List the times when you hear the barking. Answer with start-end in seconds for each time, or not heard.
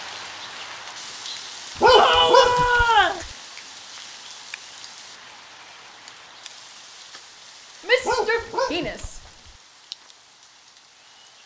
1.8-3.3, 8.0-9.5.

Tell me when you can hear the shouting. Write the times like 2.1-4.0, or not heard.
1.9-3.2, 7.8-9.2.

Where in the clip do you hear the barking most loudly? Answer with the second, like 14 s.
2 s.